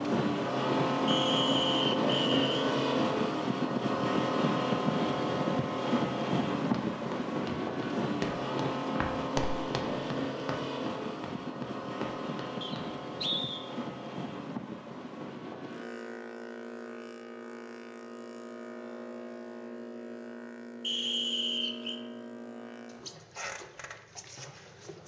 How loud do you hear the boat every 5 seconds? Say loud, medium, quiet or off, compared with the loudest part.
loud, loud, medium, quiet, quiet.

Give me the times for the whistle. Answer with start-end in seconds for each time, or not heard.
1.1-2.7, 12.6-13.6, 20.8-22.0.